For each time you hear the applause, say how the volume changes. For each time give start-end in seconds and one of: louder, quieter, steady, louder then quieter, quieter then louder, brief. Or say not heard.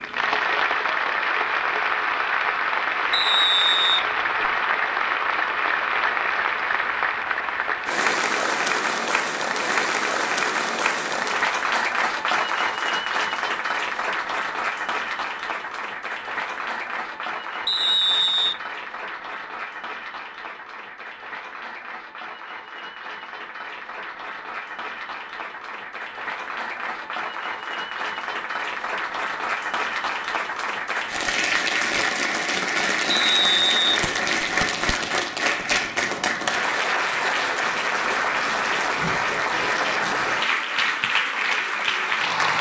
0.0-42.5 quieter then louder.